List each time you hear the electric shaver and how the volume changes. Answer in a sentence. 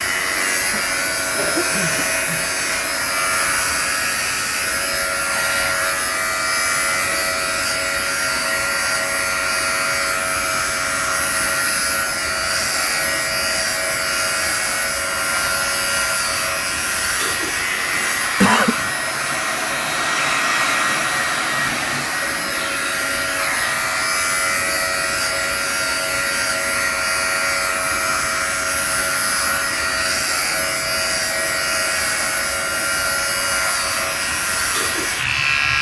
You can hear the electric shaver from 0.0 to 35.7 s, at a steady volume.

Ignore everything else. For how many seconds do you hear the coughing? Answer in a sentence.
You can hear the coughing for 3 seconds altogether.